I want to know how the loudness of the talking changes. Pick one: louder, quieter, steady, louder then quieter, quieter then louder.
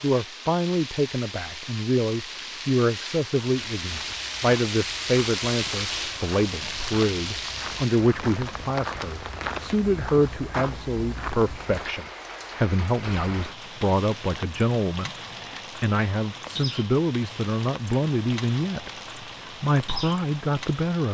steady.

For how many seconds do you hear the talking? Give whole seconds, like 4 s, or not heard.
21 s.